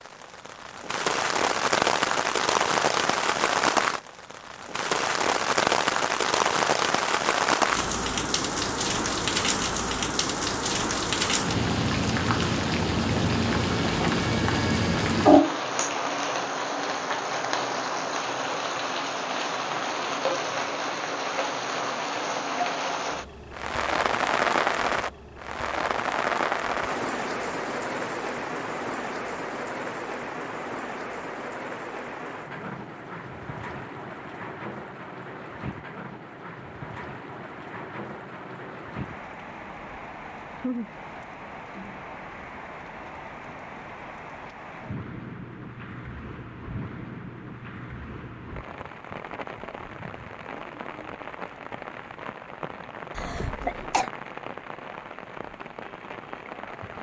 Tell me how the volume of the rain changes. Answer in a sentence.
The loudness of the rain goes down.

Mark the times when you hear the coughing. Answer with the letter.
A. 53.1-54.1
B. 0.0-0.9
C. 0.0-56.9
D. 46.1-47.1
A.